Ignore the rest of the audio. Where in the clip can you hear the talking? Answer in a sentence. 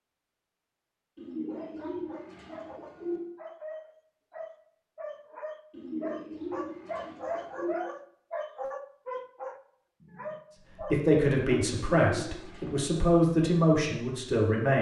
You can hear the talking from 10.9 to 14.7 s.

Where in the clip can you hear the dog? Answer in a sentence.
The dog can be heard from 1.4 to 11.8 s.